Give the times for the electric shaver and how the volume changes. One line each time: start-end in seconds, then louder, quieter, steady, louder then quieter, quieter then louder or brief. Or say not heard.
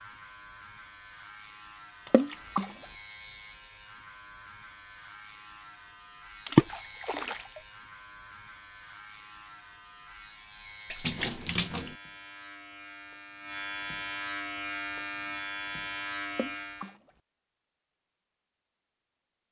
0.0-16.9 louder.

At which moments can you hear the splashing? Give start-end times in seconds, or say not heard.
2.0-2.7, 6.5-7.4, 10.9-11.9, 16.3-16.9.